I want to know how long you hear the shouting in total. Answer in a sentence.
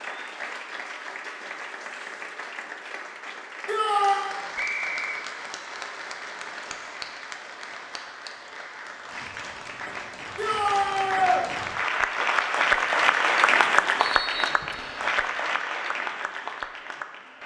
You can hear the shouting for 2 seconds altogether.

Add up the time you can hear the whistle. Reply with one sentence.
You can hear the whistle for 2 seconds altogether.